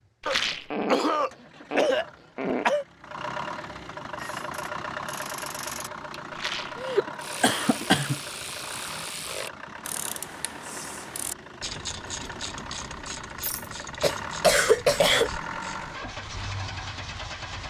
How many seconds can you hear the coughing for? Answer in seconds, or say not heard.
5 s.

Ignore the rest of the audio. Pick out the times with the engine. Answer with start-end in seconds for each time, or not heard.
0.0-17.6.